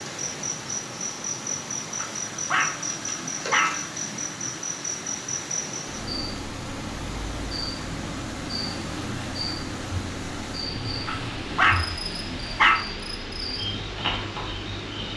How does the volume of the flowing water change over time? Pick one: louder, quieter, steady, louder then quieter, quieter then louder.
steady.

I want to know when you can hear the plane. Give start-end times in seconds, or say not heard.
not heard.